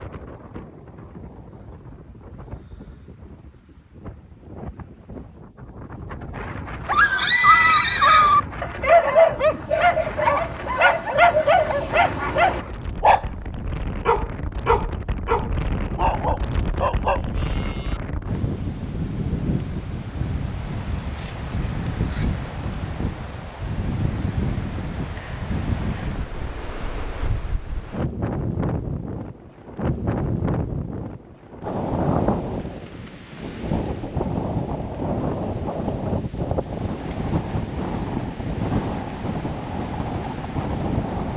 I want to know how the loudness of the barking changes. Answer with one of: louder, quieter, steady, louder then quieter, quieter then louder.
quieter.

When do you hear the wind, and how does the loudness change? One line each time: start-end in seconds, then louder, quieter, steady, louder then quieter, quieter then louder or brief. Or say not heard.
0.0-41.3 louder.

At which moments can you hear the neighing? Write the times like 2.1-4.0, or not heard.
7.0-8.3.